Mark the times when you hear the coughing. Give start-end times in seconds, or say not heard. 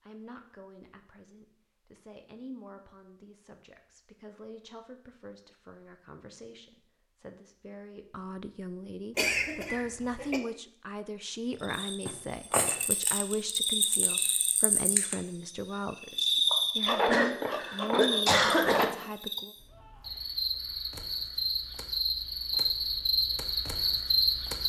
9.2-10.4, 16.9-18.9.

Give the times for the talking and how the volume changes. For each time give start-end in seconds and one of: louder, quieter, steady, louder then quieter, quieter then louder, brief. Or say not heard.
0.0-19.5 louder.